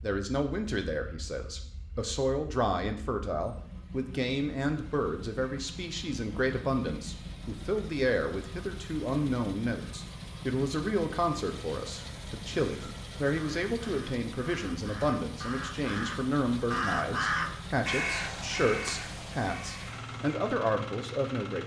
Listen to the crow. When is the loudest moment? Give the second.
17 s.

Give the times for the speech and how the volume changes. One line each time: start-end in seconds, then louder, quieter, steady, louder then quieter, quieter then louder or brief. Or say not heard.
0.0-21.6 steady.